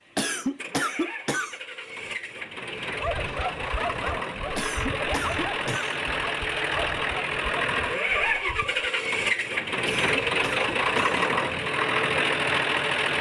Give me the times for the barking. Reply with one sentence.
You can hear the barking from 2.9 to 8.9 s.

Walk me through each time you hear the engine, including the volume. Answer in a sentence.
You can hear the engine from 0.0 to 13.1 s, getting louder.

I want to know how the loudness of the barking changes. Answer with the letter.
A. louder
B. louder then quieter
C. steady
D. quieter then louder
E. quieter
E.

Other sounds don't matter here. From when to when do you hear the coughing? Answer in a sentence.
You can hear the coughing from 0.1 to 1.6 s, from 4.5 to 6.0 s and from 9.8 to 11.2 s.